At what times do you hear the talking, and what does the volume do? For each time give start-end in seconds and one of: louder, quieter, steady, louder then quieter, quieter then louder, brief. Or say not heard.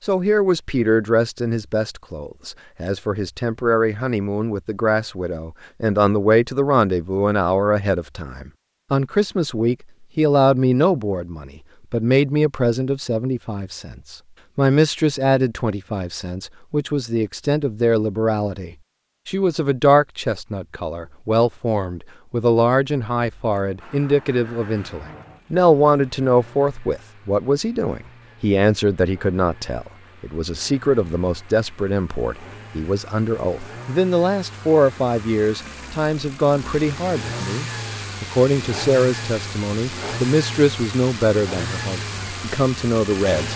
0.0-43.5 steady.